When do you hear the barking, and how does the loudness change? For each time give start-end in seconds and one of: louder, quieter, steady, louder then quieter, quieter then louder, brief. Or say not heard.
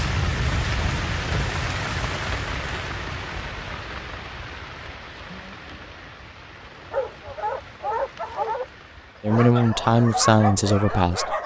6.8-11.4 steady.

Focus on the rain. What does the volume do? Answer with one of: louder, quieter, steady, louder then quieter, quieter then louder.
quieter.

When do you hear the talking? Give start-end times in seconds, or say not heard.
9.2-11.3.